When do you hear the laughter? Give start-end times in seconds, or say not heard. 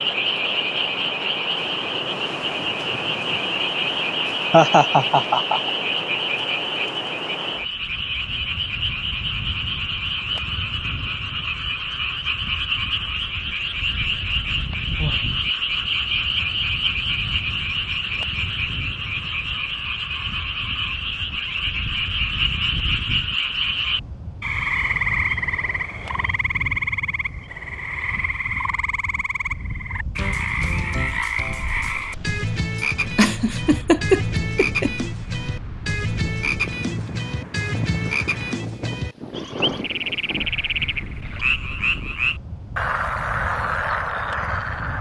4.5-5.7, 33.1-34.9.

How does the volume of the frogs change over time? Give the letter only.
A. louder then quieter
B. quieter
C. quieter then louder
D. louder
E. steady
E.